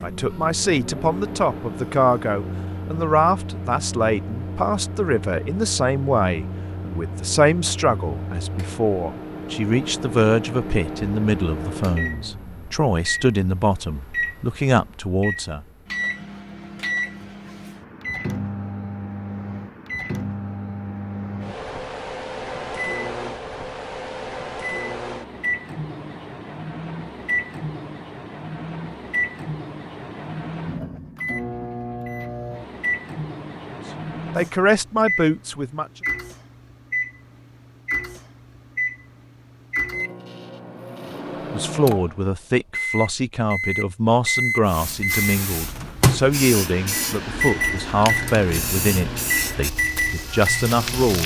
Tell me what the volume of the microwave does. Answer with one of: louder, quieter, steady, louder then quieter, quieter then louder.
louder.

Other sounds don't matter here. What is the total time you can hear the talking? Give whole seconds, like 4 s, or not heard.
27 s.